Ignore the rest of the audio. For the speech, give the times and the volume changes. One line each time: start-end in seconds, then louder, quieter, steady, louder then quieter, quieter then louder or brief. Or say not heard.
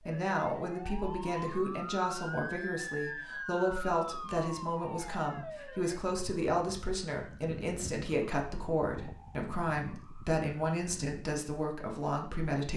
0.1-12.7 steady.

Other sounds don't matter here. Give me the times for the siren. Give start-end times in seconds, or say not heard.
0.0-11.2.